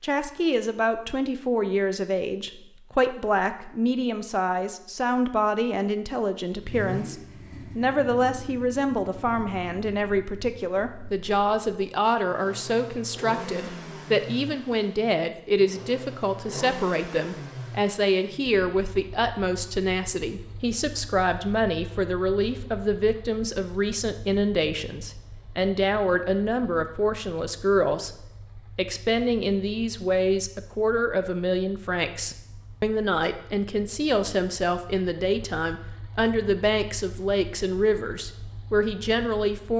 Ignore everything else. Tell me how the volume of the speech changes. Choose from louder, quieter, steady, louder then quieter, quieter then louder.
steady.